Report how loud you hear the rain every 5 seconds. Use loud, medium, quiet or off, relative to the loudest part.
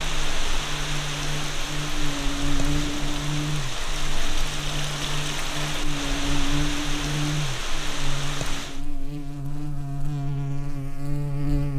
loud, loud, off.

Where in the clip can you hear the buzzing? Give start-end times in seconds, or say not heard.
0.0-11.7.